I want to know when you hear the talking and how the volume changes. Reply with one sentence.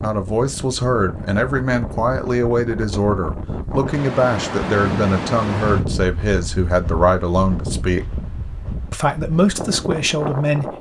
The talking can be heard from 0.0 to 8.1 s, at a steady volume; and briefly from 8.9 to 10.7 s.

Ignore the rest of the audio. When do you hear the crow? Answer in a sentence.
You can't hear the crow here.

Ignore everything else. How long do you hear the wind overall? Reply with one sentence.
You can hear the wind for 11 seconds altogether.